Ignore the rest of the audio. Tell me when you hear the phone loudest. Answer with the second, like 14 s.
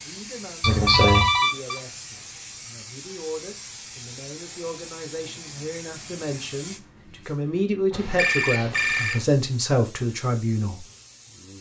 1 s.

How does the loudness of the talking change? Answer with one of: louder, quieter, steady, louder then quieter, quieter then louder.
louder.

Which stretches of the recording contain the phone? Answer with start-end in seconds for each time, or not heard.
0.6-1.8, 7.9-9.2.